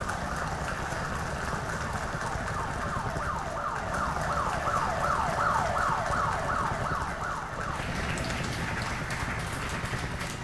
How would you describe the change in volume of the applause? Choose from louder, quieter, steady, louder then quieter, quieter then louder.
steady.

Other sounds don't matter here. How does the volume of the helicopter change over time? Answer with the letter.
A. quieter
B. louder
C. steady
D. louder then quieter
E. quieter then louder
C.